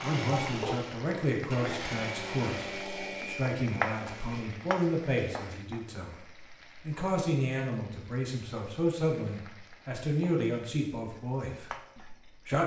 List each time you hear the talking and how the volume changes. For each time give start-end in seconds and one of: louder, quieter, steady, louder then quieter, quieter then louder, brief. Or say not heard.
0.0-12.6 steady.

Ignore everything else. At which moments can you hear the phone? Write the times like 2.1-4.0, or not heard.
not heard.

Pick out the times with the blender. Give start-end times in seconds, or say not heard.
0.0-4.5.